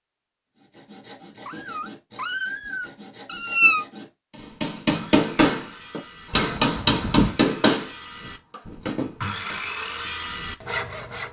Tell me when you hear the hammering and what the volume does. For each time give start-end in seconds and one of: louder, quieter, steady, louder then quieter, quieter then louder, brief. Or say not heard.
4.6-9.9 quieter.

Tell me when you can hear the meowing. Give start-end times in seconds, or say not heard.
1.4-3.9, 6.3-7.3.